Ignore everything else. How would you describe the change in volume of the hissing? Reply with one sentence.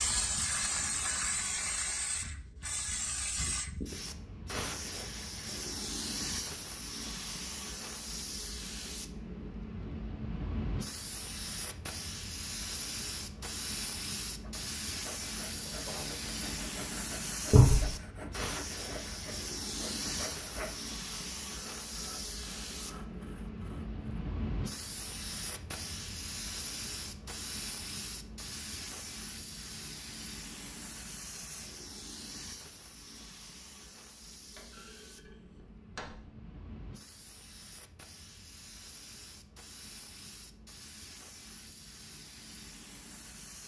The loudness of the hissing goes down.